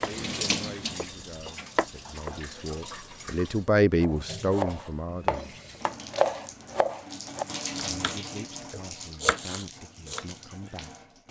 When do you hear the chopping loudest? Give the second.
6 s.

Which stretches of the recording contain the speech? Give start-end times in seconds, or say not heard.
0.0-5.5, 8.0-10.9.